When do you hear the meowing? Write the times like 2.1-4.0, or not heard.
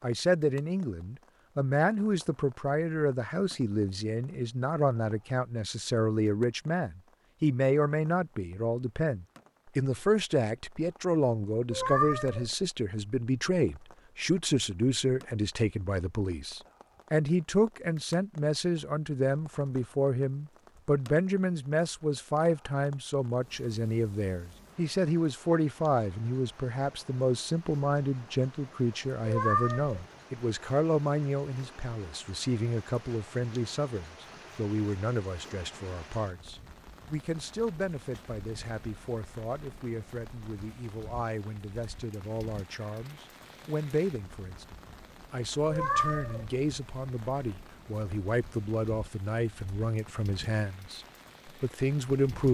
11.7-12.5, 29.2-30.1, 45.6-46.5.